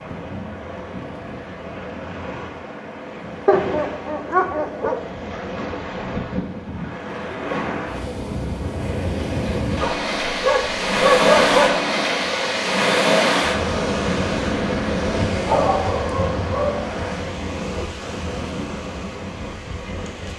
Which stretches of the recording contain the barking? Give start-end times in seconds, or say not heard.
3.5-5.0, 9.8-11.8, 15.2-16.9.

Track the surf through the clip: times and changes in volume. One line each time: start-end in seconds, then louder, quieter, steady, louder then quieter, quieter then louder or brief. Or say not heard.
0.0-20.3 louder then quieter.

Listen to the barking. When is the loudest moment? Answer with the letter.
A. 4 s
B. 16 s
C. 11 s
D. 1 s
C.